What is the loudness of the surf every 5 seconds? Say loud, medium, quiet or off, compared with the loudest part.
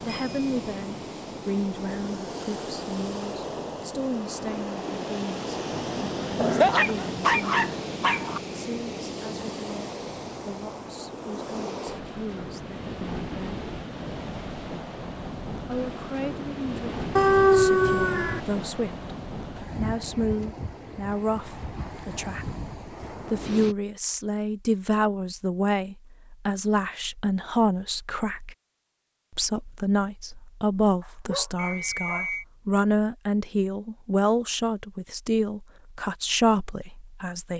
loud, loud, loud, loud, medium, off, off, off.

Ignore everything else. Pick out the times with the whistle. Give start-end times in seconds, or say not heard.
31.6-32.5.